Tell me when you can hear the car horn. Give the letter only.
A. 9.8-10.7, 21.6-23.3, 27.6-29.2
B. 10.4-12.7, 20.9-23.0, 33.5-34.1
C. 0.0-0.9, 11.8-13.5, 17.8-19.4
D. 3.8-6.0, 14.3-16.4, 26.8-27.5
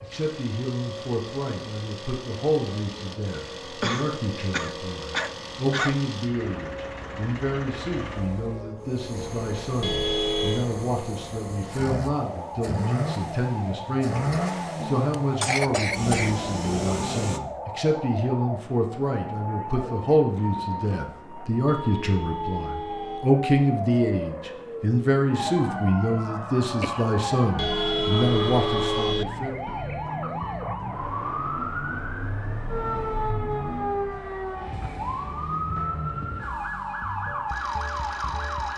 A.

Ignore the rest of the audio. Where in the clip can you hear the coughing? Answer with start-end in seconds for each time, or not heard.
3.8-6.0, 14.3-16.4, 26.8-27.5.